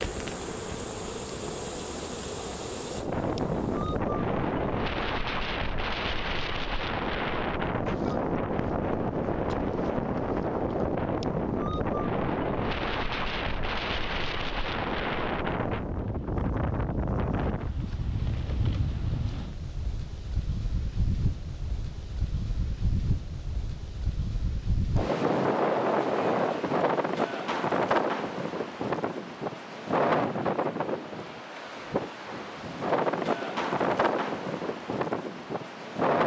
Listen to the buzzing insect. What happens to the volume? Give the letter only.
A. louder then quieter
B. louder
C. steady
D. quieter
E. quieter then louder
D.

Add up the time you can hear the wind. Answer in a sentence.
The wind can be heard for 36 seconds in total.